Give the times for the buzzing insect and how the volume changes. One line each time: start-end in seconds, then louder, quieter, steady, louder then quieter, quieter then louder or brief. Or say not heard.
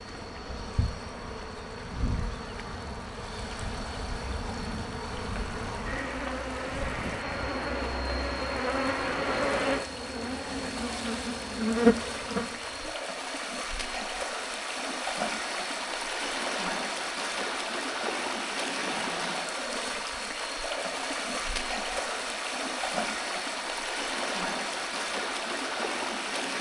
0.0-12.9 louder.